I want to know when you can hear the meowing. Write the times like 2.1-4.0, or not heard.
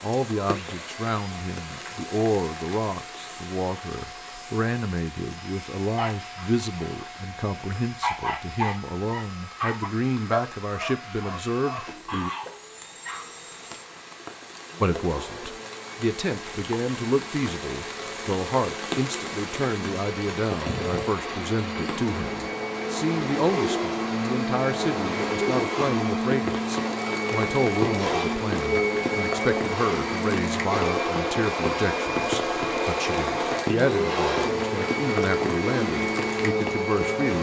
not heard.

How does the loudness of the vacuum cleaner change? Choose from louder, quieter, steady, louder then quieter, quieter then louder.
louder.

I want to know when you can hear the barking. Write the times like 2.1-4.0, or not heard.
5.9-13.3.